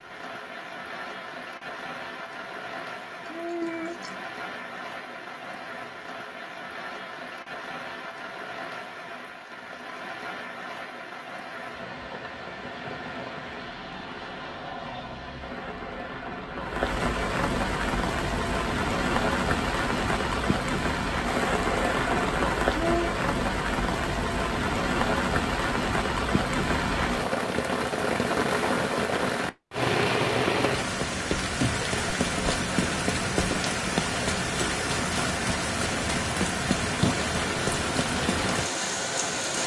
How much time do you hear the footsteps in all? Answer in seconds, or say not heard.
not heard.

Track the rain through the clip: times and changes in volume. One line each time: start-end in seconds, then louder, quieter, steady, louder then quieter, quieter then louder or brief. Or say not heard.
0.0-39.6 louder.